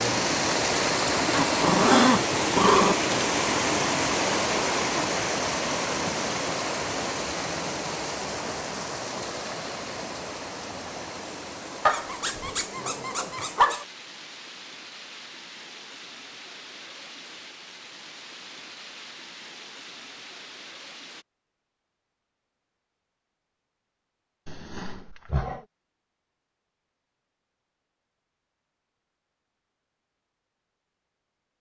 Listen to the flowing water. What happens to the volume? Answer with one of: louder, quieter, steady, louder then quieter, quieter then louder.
quieter.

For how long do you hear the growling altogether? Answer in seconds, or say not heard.
5 s.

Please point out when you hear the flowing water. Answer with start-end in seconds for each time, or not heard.
0.0-21.2.